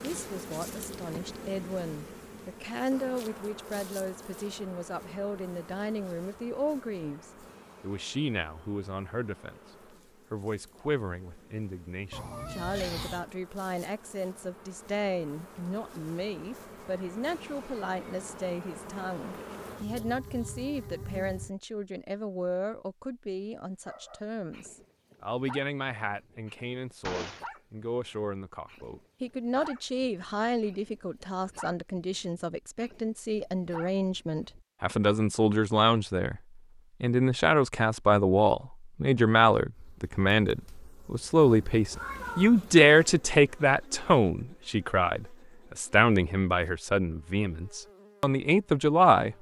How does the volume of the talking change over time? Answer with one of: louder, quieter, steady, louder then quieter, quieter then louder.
louder.